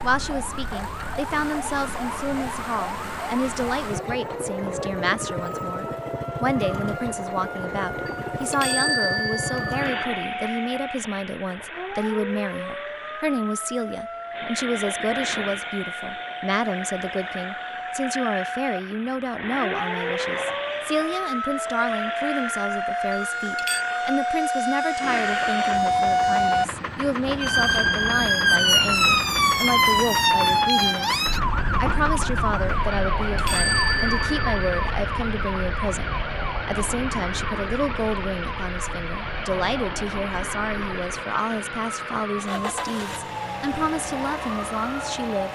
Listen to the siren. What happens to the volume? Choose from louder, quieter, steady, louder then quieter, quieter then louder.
louder then quieter.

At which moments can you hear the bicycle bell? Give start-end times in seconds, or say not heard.
8.1-10.1, 23.1-23.9, 32.9-34.9.